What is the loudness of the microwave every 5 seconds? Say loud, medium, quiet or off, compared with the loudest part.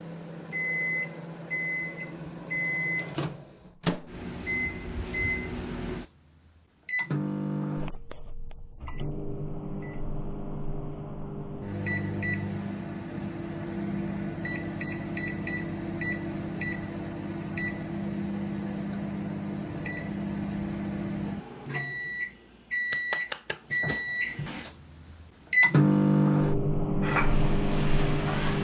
medium, medium, medium, medium, medium, loud.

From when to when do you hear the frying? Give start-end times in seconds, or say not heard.
27.0-28.6.